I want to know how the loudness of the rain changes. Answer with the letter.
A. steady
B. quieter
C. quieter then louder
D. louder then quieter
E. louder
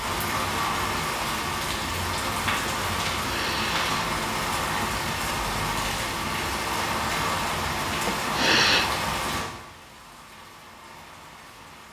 B.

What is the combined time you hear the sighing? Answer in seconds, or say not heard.
2 s.